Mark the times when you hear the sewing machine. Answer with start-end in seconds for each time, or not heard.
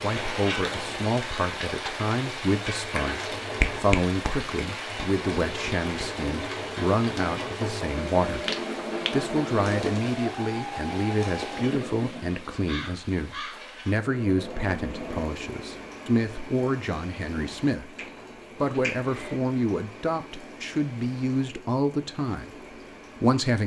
0.0-15.3.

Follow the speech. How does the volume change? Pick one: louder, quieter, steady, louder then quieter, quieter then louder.
steady.